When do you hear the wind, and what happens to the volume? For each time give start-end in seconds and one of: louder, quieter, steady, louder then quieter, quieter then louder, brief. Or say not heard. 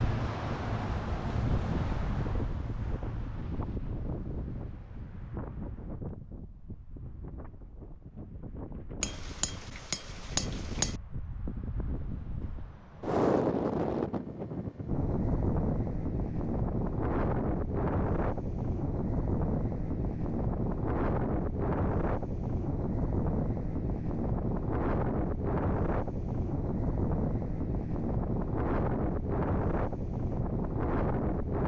0.0-31.6 quieter then louder.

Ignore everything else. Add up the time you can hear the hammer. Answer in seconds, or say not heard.
2 s.